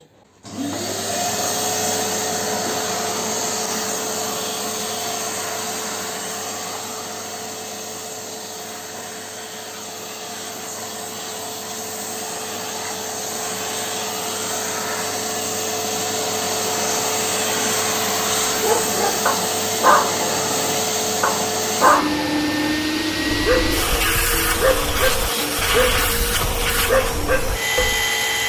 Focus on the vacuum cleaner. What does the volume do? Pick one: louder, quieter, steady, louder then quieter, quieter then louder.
quieter then louder.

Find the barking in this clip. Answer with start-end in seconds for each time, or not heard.
18.6-28.1.